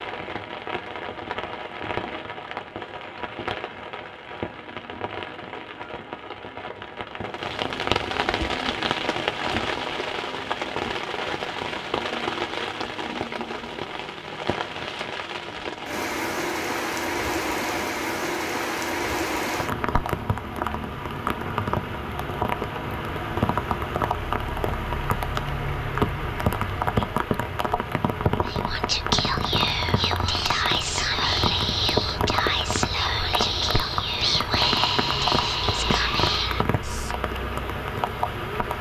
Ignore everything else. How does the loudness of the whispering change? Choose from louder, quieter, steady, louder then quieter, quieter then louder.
steady.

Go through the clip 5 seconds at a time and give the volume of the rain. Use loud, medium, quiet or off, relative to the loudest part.
medium, loud, loud, loud, loud, loud, loud, loud.